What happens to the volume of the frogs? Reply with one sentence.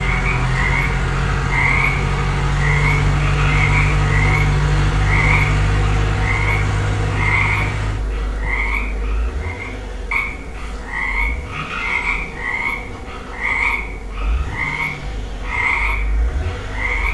The volume of the frogs stays about the same.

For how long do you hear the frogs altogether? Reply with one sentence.
The frogs can be heard for 17 seconds in total.